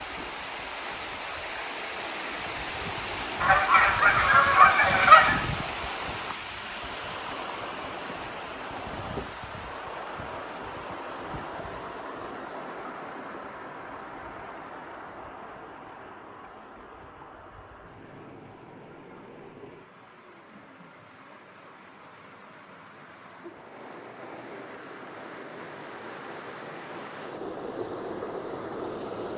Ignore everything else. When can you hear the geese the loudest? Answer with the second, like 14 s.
5 s.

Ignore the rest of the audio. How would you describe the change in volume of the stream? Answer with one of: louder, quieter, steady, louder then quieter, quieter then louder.
quieter then louder.